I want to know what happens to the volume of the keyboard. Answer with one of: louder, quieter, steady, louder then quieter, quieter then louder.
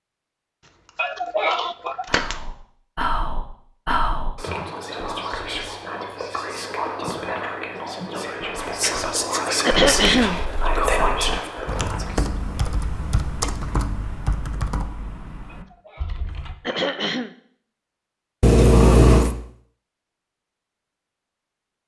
louder then quieter.